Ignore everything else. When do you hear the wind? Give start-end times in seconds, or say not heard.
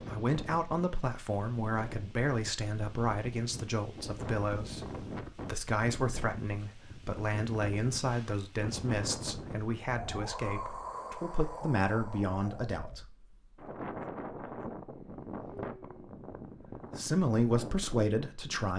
0.0-18.7.